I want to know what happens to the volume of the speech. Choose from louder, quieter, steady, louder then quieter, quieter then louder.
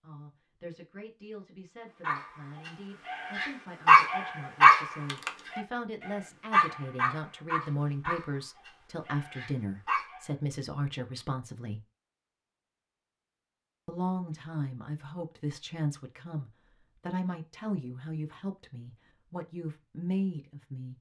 louder.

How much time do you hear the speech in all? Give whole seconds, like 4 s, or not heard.
19 s.